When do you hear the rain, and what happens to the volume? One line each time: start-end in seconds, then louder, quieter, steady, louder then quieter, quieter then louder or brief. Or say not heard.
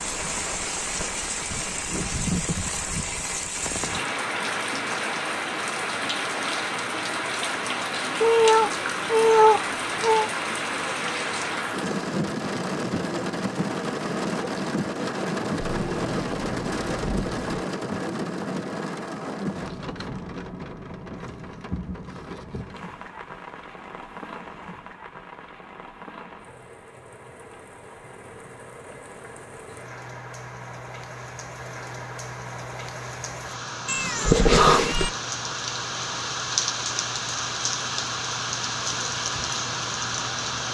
0.0-40.6 quieter then louder.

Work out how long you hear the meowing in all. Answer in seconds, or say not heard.
5 s.